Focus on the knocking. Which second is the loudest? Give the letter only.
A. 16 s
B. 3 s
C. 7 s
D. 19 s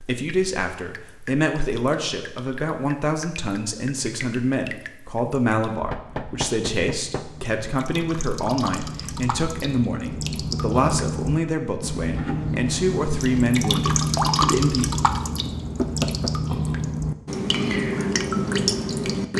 A.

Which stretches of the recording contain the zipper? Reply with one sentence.
You can't hear the zipper here.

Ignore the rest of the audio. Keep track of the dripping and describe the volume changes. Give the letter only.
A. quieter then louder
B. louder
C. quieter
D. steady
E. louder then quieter
B.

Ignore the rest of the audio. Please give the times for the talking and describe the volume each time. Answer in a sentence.
The talking can be heard from 0.0 to 14.9 s, at a steady volume.